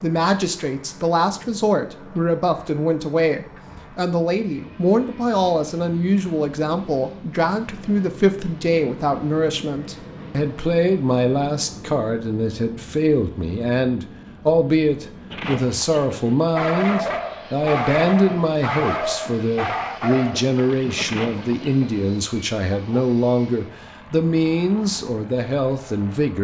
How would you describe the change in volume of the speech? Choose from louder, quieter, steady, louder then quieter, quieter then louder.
steady.